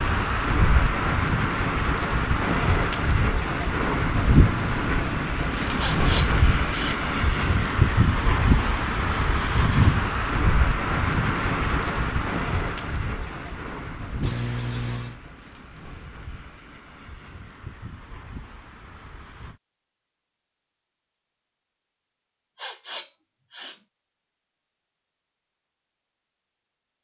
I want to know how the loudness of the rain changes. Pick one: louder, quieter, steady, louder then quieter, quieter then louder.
quieter.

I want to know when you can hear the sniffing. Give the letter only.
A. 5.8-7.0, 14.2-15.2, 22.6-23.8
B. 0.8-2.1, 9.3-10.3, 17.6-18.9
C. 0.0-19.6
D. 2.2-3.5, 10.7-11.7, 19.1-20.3
A.